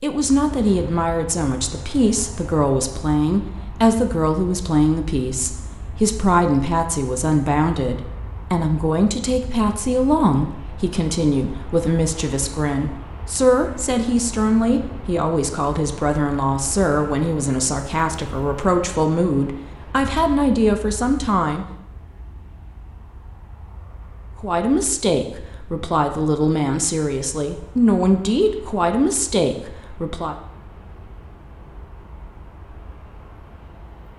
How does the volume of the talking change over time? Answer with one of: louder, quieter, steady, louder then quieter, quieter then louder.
steady.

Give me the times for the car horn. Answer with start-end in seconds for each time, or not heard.
not heard.